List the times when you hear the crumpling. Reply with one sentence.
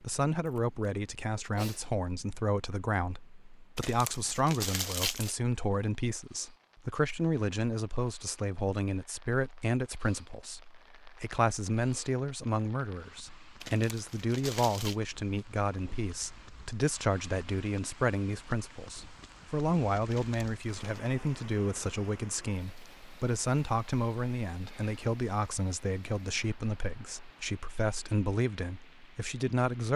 The crumpling can be heard from 3.8 to 5.3 s, from 13.6 to 14.9 s and from 20.1 to 21.0 s.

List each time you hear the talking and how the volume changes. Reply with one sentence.
You can hear the talking from 0.0 to 29.9 s, at a steady volume.